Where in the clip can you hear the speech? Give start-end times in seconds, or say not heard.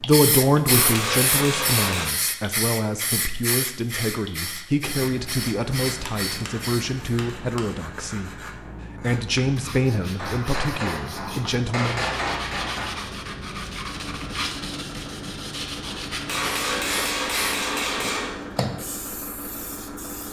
0.0-8.3, 9.0-12.1.